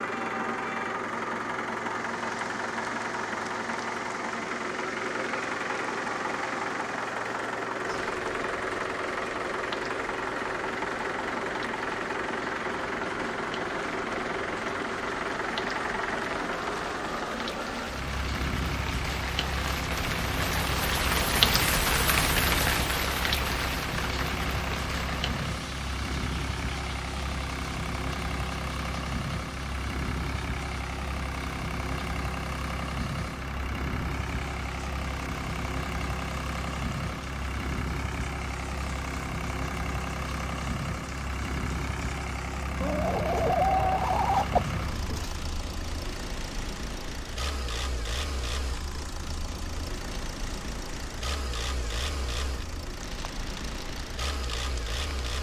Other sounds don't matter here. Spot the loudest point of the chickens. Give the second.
44 s.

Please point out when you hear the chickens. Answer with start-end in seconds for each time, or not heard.
42.8-45.4.